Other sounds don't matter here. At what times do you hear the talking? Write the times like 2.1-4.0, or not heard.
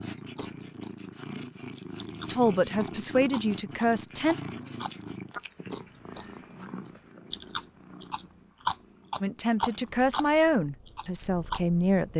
2.2-4.3, 9.2-12.1.